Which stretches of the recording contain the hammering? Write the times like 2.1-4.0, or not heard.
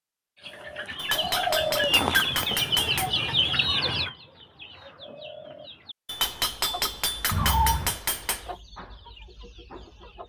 0.9-3.1, 6.0-8.4.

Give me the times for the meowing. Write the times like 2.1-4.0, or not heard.
7.3-8.0.